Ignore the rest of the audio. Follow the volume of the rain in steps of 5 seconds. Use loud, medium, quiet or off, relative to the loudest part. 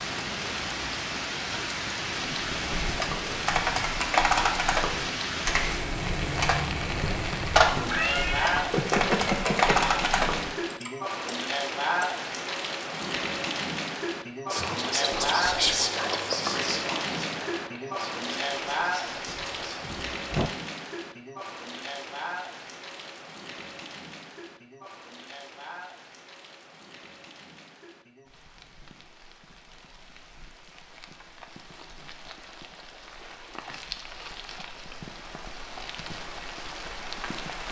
loud, loud, loud, loud, medium, quiet, quiet, medium.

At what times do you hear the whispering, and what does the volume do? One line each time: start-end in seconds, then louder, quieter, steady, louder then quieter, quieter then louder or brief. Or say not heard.
14.5-19.9 quieter.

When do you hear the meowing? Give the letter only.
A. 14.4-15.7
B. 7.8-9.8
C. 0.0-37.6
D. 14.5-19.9
B.